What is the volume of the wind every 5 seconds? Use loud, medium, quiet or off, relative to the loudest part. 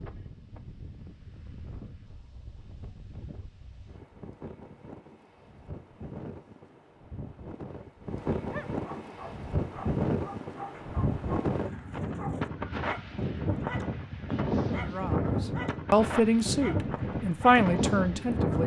quiet, medium, loud, loud.